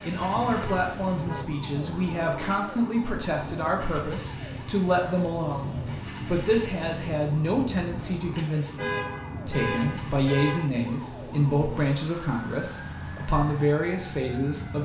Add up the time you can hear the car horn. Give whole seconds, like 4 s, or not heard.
3 s.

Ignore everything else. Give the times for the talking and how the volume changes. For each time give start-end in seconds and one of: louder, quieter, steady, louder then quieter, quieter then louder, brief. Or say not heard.
0.0-14.7 steady.